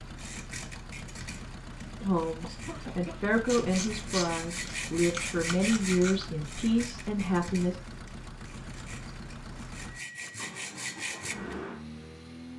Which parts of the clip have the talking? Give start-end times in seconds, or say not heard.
2.0-7.8.